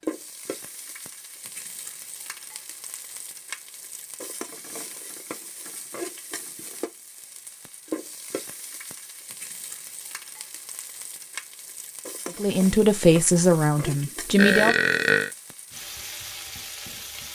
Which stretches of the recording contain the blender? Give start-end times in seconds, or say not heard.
not heard.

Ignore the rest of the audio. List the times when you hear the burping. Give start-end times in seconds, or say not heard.
14.3-15.3.